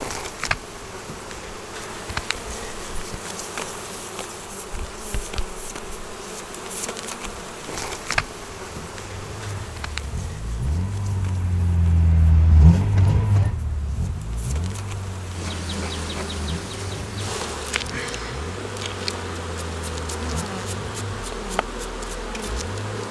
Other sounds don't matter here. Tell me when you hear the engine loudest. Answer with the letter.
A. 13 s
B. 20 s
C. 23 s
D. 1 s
A.